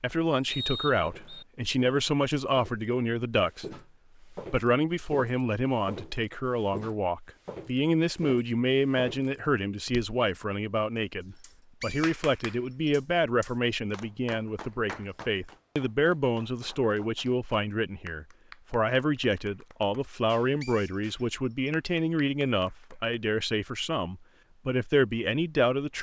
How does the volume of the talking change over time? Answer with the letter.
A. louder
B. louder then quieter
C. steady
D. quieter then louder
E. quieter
C.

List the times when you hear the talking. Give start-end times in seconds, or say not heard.
0.0-25.9.